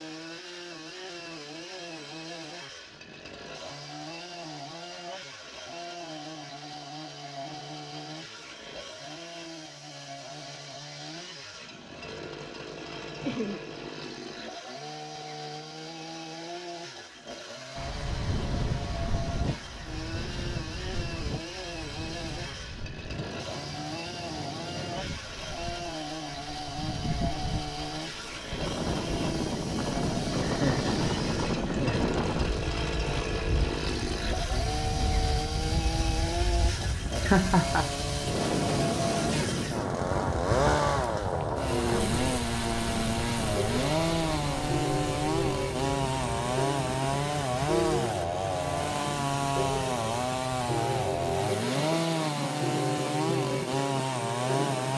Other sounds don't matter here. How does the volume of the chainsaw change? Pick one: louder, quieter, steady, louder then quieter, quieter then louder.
louder.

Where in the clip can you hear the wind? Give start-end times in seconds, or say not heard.
17.8-54.9.